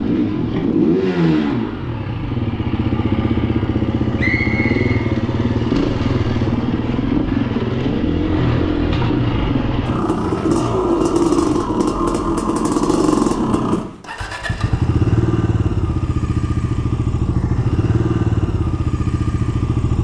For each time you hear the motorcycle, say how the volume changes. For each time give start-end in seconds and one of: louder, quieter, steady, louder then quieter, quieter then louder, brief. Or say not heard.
0.0-19.9 steady.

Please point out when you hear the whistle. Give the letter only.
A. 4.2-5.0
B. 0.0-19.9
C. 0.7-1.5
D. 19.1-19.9
A.